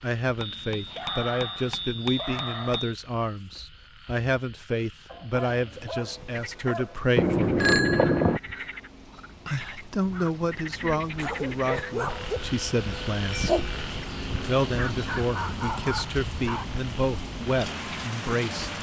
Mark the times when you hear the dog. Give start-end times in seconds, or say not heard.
0.8-2.8, 5.0-7.0, 11.2-12.4, 14.7-16.7.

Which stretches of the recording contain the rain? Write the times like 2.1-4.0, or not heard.
6.0-18.7.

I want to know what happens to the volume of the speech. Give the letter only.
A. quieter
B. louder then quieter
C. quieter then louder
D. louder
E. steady
E.